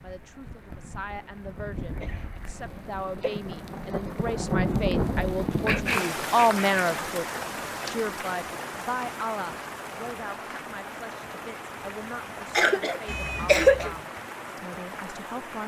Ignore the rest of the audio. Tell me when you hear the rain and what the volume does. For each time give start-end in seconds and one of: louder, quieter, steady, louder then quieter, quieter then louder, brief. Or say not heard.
0.0-15.6 louder then quieter.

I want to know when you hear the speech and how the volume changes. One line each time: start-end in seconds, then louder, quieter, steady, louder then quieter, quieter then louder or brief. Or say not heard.
0.0-15.6 louder then quieter.